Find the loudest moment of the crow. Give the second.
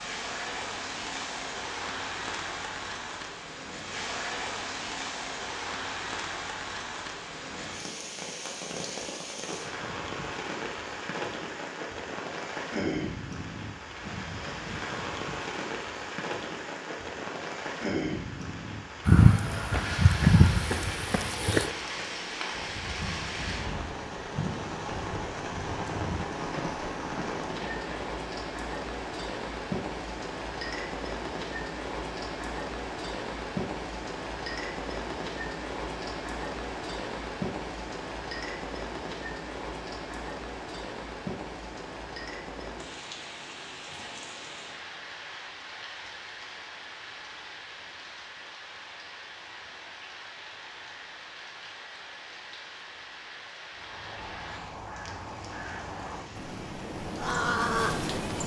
58 s.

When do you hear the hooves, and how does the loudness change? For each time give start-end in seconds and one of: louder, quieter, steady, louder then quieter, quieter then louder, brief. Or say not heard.
19.1-28.1 quieter.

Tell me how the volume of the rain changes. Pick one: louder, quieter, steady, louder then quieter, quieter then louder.
quieter.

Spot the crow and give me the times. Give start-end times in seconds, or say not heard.
53.6-58.4.